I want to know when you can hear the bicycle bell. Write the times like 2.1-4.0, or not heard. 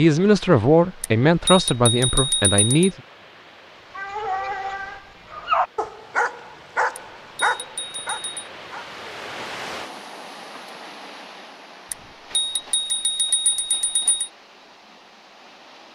1.0-2.9, 7.0-8.5, 11.9-14.3.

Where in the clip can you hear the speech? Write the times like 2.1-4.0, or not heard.
0.0-3.0.